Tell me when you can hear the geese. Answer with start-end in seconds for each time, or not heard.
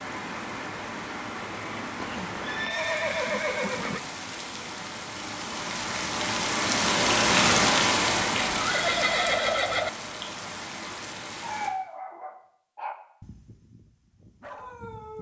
not heard.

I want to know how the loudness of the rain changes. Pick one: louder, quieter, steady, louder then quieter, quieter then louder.
louder then quieter.